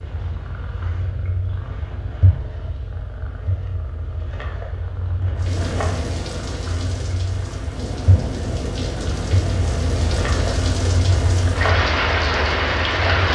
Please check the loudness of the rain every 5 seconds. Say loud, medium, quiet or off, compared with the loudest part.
off, medium, loud.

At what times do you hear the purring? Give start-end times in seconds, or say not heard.
0.0-13.2.